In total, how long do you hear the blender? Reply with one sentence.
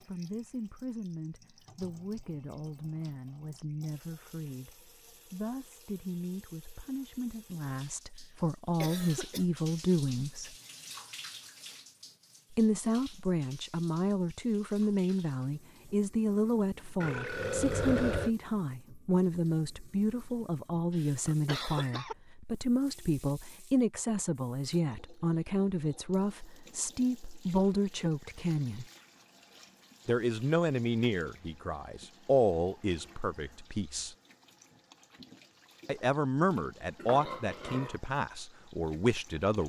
You can't hear the blender here.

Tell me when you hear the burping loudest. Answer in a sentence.
The volume of the burping peaks at 18 seconds.